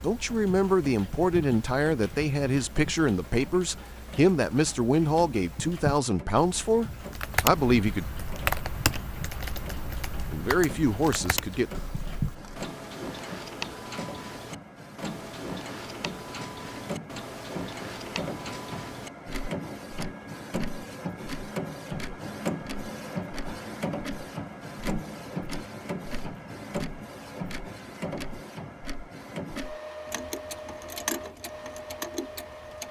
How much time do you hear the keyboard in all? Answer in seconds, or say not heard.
6 s.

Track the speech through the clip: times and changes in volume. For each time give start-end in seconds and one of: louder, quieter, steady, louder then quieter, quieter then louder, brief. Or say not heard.
0.0-8.1 steady
10.3-11.8 brief.